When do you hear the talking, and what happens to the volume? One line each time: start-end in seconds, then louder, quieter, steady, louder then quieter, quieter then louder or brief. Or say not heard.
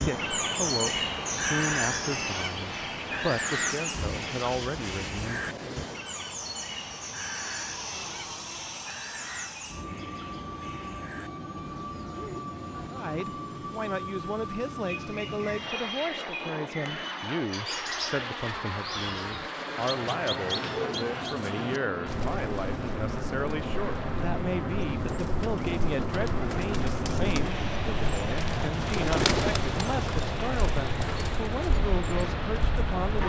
0.0-5.5 quieter then louder
12.9-33.2 steady.